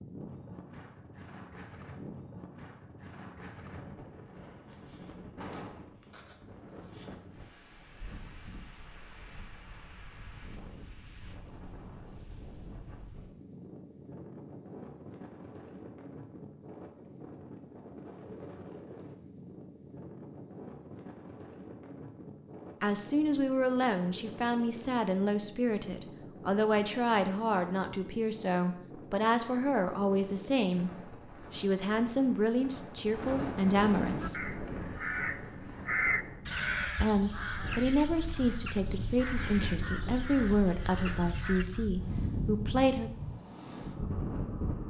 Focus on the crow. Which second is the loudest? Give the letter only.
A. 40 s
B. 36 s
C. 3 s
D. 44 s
B.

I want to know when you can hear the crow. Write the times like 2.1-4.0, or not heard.
34.0-41.9.